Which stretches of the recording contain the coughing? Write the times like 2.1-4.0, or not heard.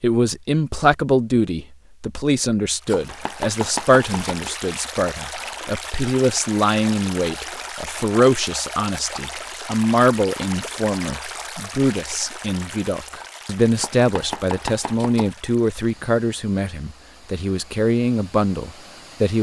not heard.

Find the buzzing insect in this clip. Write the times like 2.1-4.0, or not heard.
not heard.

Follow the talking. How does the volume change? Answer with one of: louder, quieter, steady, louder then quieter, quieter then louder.
steady.